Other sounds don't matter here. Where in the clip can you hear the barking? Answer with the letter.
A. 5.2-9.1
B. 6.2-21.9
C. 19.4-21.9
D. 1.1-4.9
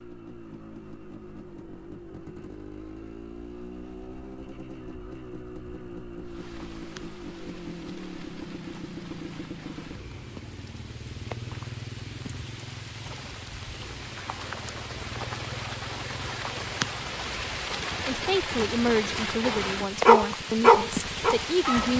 C.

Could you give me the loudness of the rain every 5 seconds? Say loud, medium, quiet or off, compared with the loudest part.
off, quiet, medium, loud, loud.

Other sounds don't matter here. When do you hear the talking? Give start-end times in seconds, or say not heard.
18.1-21.9.